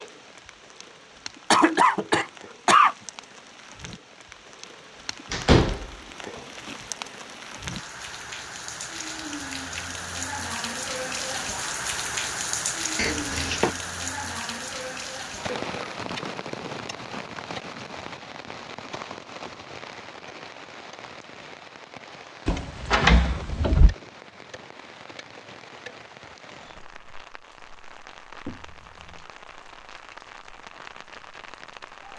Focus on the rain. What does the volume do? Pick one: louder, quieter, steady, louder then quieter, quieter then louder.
louder then quieter.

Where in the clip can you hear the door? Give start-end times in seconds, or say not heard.
5.3-5.9, 12.9-13.7, 22.4-23.9.